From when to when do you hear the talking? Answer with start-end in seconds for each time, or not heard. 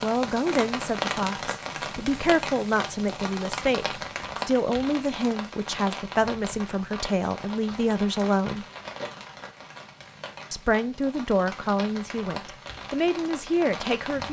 0.0-8.7, 10.5-14.2.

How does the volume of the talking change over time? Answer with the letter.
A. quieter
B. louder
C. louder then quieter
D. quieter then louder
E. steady
E.